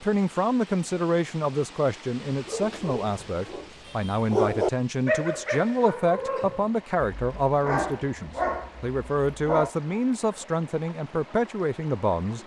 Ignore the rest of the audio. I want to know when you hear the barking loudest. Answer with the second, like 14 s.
5 s.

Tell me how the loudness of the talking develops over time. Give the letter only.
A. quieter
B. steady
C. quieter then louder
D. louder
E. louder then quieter
B.